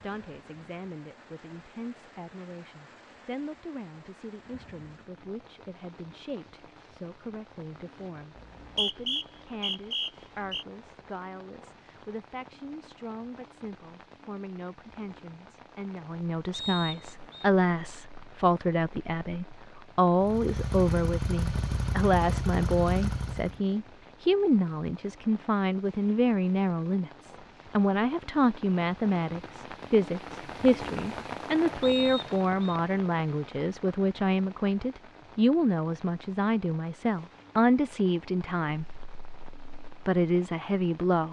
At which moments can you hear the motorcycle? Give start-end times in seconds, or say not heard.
20.2-23.6.